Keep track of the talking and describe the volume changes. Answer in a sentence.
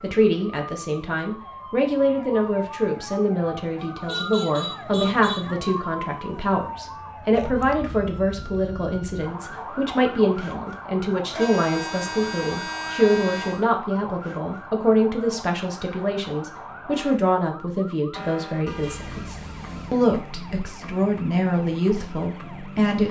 The volume of the talking stays about the same.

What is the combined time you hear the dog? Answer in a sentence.
You can't hear the dog here.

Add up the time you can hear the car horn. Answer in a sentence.
You can hear the car horn for 5 seconds altogether.